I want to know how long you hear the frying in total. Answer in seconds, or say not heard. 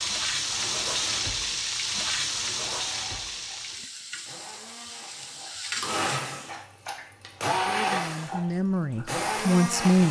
6 s.